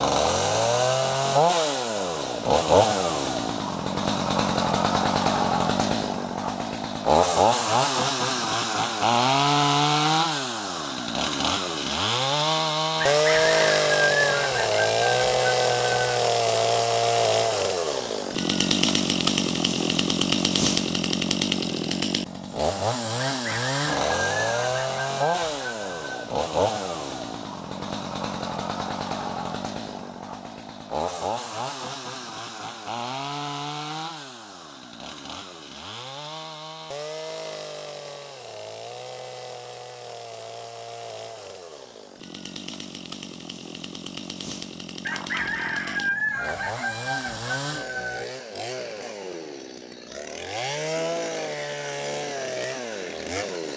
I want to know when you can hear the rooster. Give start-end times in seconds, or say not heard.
13.0-16.2, 23.3-26.3, 45.0-48.2.